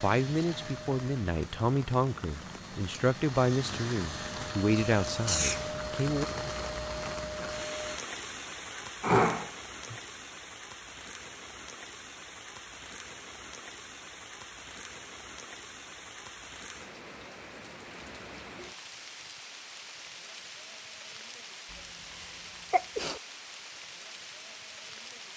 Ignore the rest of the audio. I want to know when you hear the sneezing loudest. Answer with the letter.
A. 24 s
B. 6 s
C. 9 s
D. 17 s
C.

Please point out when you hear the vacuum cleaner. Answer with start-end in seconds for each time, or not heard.
0.0-8.0.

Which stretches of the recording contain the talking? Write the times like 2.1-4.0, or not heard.
0.0-6.2.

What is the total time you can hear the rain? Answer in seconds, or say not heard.
25 s.